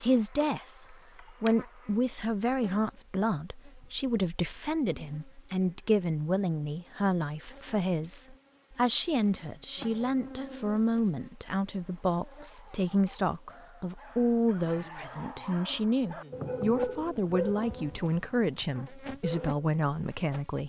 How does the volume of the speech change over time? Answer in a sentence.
The volume of the speech stays about the same.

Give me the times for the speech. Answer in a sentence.
You can hear the speech from 0.0 to 20.6 s.